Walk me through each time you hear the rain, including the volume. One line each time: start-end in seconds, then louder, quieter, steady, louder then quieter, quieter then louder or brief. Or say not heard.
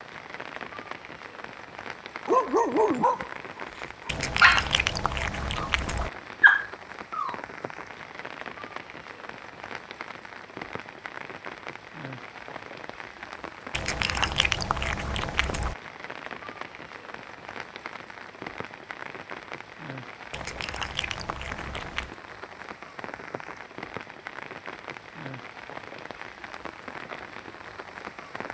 0.0-28.4 steady.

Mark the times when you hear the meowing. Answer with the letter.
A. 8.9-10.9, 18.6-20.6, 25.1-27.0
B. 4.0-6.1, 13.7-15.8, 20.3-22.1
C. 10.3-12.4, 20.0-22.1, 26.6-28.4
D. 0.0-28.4
B.